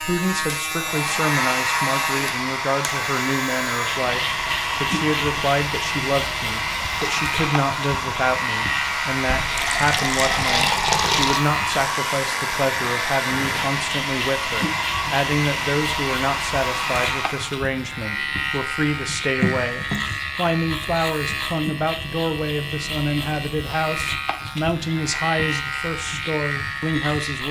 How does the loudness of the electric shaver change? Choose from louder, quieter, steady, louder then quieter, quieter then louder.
steady.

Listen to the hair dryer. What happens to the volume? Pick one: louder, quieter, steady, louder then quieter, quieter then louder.
steady.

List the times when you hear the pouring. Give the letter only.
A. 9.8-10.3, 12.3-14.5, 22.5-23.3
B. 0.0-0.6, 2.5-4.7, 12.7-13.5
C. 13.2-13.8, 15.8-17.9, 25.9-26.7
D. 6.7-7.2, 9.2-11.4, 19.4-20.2
D.